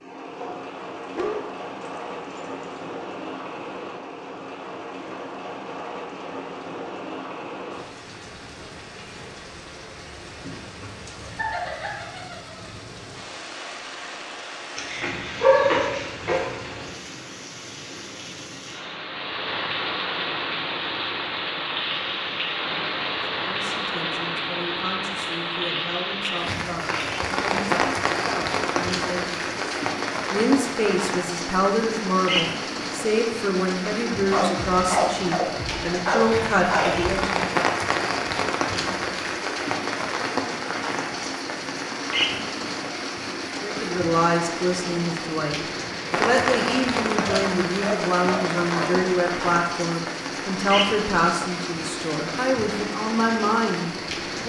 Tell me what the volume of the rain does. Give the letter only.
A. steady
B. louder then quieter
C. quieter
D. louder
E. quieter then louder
D.